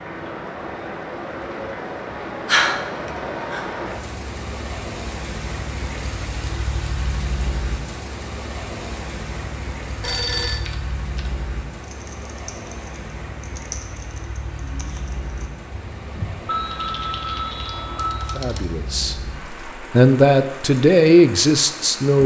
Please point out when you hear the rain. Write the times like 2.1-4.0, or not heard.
0.0-22.2.